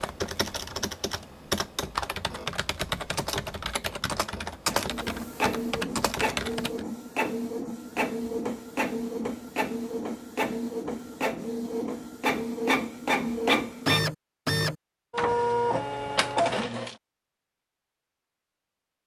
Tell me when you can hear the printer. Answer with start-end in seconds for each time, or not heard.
4.7-16.9.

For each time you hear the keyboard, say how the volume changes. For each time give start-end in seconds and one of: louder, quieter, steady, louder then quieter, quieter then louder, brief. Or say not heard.
0.0-6.8 steady.